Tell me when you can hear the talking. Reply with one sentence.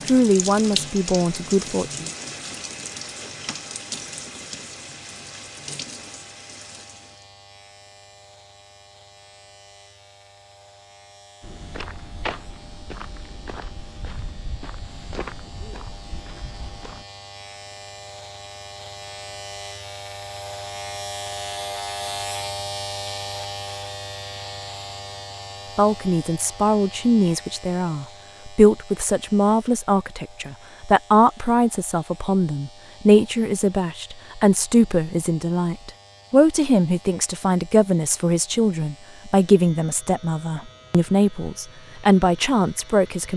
You can hear the talking from 0.1 to 2.0 s and from 25.8 to 43.3 s.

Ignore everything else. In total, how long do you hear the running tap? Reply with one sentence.
You can hear the running tap for 7 seconds altogether.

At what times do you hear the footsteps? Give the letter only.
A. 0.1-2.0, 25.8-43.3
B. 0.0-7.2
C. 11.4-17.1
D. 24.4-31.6
C.